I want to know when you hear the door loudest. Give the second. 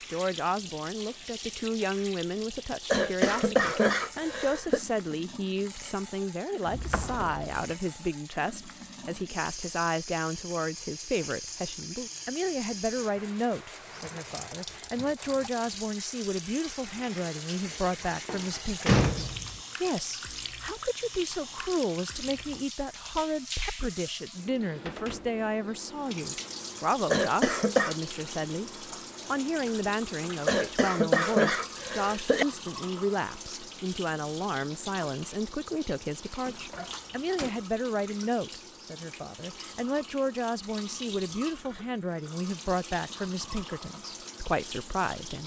19 s.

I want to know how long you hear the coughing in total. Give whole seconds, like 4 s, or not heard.
5 s.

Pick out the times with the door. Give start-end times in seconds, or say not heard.
6.7-7.5, 17.6-19.6, 36.5-37.5.